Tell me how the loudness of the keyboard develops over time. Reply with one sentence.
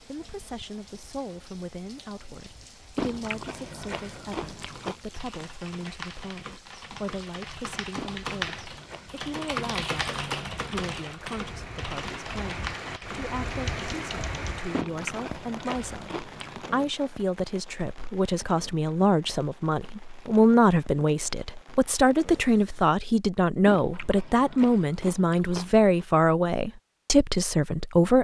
The volume of the keyboard goes up, then down.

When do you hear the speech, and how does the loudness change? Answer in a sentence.
The speech can be heard from 0.0 to 28.1 s, getting louder.